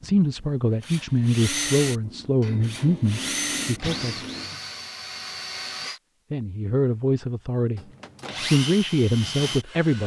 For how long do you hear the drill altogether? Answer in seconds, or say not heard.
8 s.